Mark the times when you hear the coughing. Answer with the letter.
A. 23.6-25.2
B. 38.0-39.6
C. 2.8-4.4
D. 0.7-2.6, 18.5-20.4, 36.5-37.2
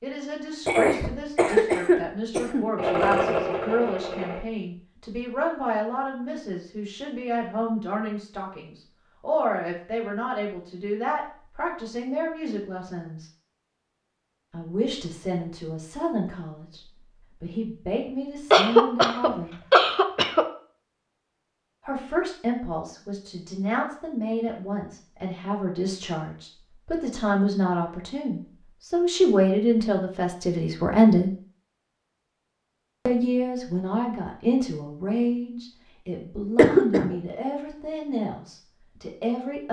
D.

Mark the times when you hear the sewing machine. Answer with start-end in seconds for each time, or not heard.
2.8-4.4.